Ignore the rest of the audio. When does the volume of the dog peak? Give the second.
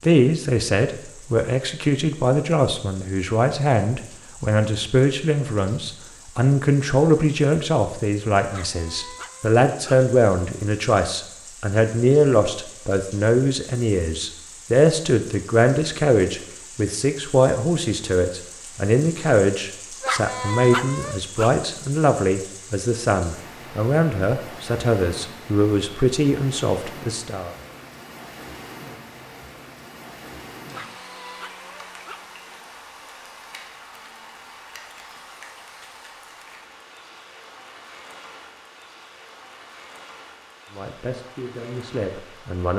21 s.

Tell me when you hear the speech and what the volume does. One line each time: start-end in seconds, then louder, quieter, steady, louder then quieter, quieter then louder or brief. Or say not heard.
0.0-27.5 steady
40.8-42.7 brief.